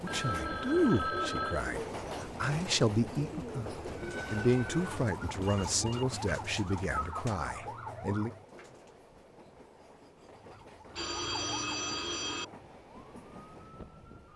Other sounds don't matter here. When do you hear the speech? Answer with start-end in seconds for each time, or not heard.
0.0-8.3.